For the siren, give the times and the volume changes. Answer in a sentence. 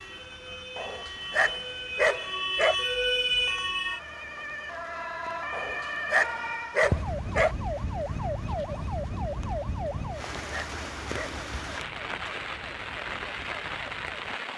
You can hear the siren from 0.0 to 14.5 s, getting quieter.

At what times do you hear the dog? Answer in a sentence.
You can hear the dog from 0.8 to 2.8 s, from 5.5 to 7.5 s and from 9.9 to 11.3 s.